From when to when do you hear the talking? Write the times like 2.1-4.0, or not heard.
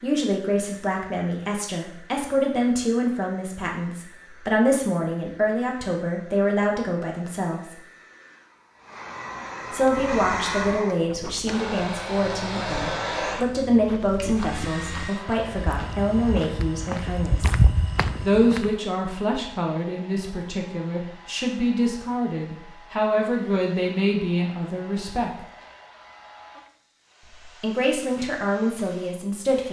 0.0-7.8, 9.7-25.4, 27.4-29.6.